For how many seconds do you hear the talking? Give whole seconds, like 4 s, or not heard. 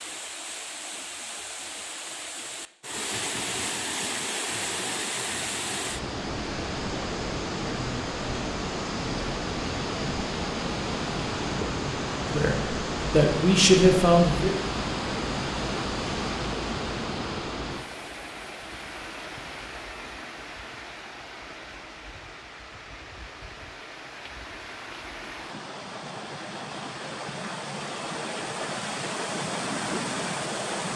2 s.